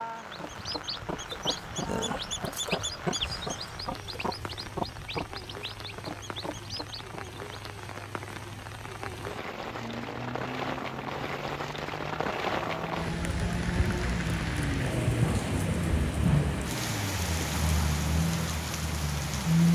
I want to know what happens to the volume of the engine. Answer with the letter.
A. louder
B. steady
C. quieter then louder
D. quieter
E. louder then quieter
A.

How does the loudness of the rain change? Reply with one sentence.
The loudness of the rain goes up.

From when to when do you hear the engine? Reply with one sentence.
You can hear the engine from 9.5 to 19.7 s.